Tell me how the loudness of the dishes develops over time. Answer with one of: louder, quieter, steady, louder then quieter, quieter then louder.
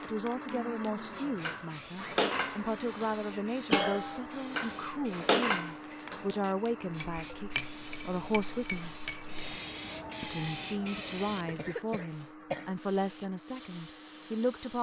quieter then louder.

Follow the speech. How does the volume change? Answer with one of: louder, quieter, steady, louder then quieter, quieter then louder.
steady.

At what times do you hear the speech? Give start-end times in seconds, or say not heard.
0.0-8.9, 10.2-14.7.